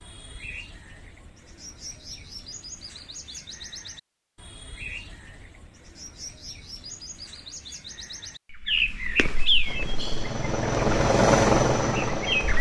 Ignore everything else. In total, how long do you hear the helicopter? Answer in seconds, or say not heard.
3 s.